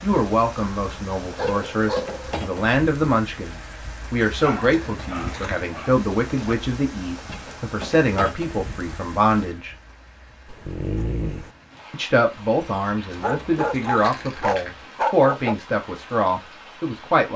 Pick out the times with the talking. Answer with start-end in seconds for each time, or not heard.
0.0-9.8, 11.9-17.3.